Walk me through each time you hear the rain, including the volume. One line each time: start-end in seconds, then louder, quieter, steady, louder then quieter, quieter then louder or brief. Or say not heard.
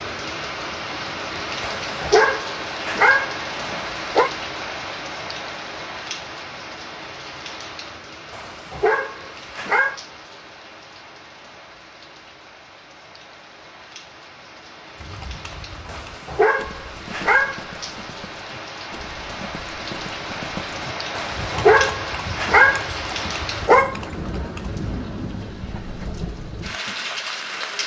0.0-27.8 quieter then louder.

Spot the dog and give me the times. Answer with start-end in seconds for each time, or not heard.
1.6-4.3, 8.3-9.9, 15.8-18.1, 21.1-23.9.